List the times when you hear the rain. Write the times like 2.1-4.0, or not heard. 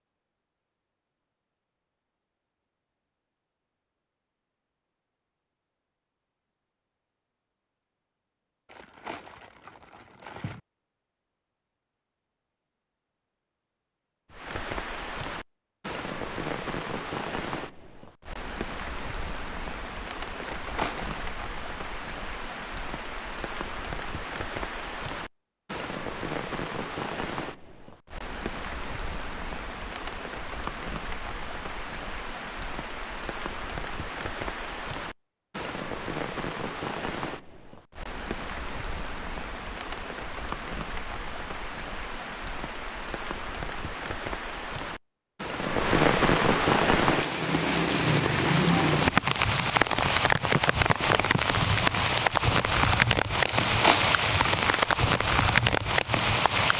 14.3-56.7.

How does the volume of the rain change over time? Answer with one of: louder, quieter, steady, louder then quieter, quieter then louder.
louder.